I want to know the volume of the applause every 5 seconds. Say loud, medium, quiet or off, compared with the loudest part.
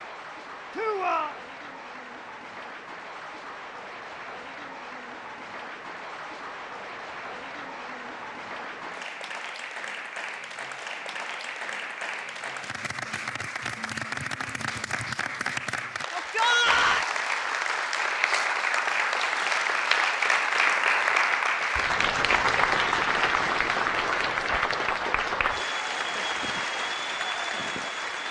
quiet, quiet, medium, loud, loud, medium.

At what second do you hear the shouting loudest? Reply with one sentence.
The loudest moment of the shouting is at 17 seconds.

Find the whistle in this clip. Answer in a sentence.
The whistle can't be heard in this clip.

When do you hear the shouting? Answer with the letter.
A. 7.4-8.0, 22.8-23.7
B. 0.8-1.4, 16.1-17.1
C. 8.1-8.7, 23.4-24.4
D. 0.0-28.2
B.